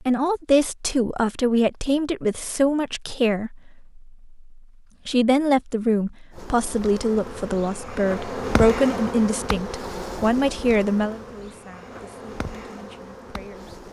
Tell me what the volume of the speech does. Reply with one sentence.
The volume of the speech goes down.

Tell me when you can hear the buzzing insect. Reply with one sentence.
The buzzing insect can be heard from 6.3 to 13.8 s.